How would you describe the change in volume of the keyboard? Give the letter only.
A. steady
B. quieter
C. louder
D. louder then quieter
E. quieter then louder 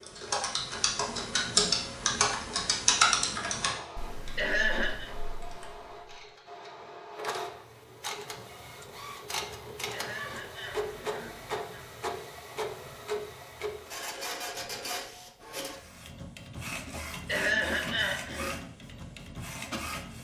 D.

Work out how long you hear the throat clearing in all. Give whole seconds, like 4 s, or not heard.
4 s.